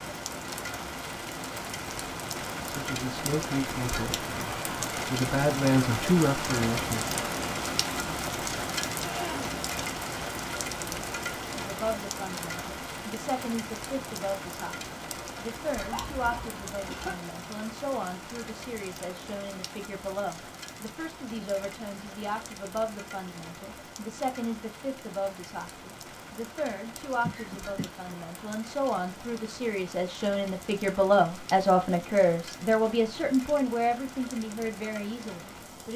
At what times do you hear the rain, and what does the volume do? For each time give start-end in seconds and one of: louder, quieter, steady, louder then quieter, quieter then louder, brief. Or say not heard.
0.0-35.9 quieter.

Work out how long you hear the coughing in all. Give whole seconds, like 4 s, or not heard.
3 s.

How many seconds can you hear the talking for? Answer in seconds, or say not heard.
29 s.